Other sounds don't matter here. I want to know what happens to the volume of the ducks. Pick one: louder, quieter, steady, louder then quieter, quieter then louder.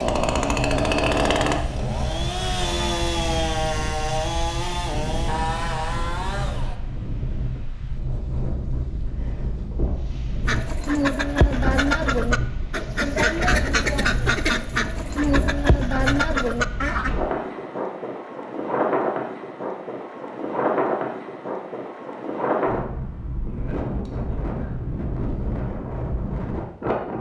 steady.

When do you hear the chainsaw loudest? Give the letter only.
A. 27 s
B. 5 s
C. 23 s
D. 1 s
D.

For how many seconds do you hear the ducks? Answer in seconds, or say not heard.
7 s.